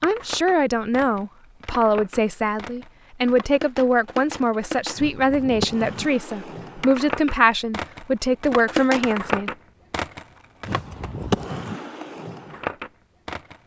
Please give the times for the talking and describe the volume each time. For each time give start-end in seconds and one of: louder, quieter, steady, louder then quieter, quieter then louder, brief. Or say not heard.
0.0-9.5 steady.